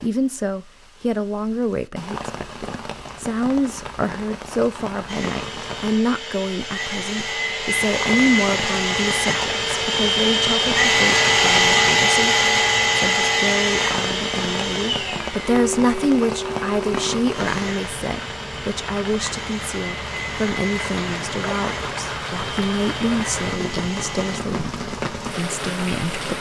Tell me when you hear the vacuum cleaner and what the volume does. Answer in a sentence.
The vacuum cleaner can be heard from 5.0 to 24.4 s, getting louder then quieter.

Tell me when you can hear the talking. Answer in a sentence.
You can hear the talking from 0.0 to 26.3 s.